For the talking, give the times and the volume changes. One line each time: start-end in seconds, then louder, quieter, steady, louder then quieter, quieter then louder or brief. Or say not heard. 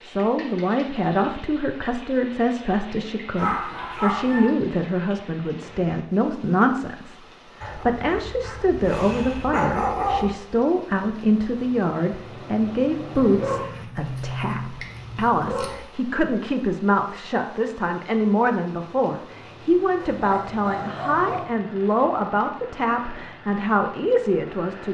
0.0-24.9 steady.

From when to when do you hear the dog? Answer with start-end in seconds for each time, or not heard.
3.4-4.5, 7.6-10.2, 13.2-15.8, 20.1-21.6.